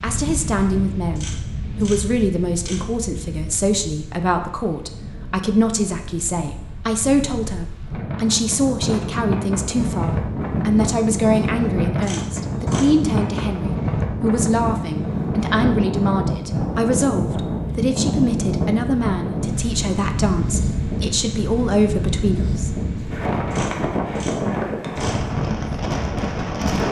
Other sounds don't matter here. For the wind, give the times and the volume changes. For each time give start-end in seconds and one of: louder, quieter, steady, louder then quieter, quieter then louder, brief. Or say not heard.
0.0-26.8 louder.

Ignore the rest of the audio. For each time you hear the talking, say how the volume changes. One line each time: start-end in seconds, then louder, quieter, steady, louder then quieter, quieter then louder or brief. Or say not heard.
0.0-22.7 steady.